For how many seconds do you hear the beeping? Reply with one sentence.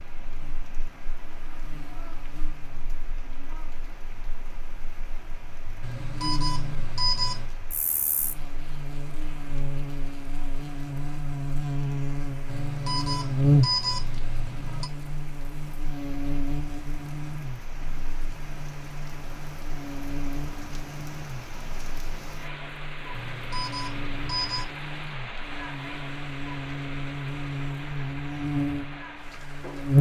The beeping can be heard for 6 seconds in total.